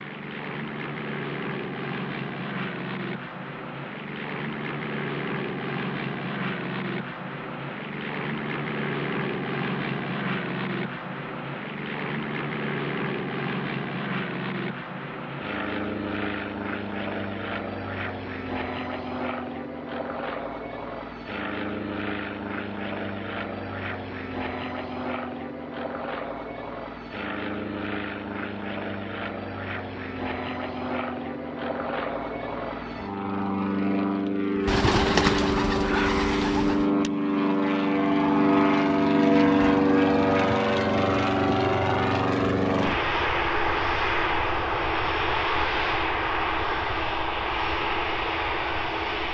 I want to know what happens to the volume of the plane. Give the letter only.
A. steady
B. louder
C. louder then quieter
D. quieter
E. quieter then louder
B.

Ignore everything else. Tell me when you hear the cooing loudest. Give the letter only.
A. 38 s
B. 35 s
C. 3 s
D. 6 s
B.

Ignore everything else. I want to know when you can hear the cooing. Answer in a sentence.
You can hear the cooing from 34.6 to 36.9 s.